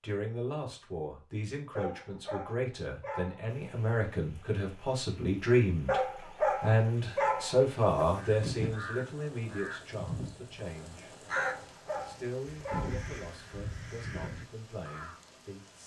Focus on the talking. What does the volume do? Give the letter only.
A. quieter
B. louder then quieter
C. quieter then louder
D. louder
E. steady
B.